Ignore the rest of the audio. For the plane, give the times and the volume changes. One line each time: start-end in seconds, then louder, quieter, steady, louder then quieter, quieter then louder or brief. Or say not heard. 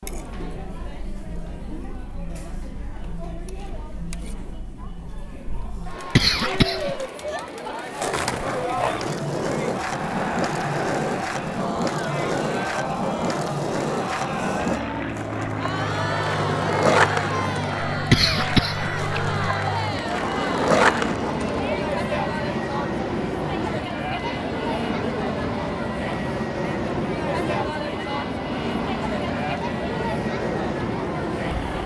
14.4-31.8 steady.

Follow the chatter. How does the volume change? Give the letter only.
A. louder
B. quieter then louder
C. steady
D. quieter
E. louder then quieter
A.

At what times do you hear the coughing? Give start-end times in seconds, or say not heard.
6.0-7.0, 17.9-19.5.